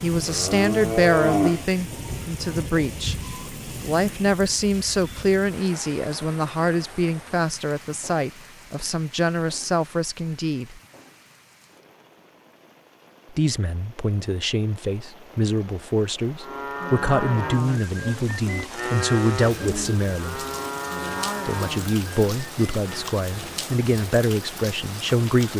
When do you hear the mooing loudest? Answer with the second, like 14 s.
1 s.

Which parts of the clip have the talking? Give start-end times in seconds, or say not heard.
0.0-10.8, 13.3-20.4, 21.4-25.5.